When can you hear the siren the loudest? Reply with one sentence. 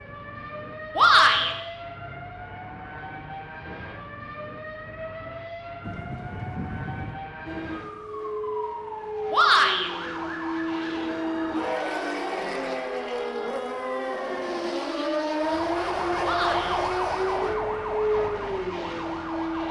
The loudest moment of the siren is at 17 seconds.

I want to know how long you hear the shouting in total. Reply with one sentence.
The shouting can be heard for 2 seconds in total.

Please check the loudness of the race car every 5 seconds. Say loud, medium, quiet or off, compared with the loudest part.
off, medium, loud, loud.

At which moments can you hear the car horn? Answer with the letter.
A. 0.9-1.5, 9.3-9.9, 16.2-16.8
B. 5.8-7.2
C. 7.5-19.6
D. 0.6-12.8
B.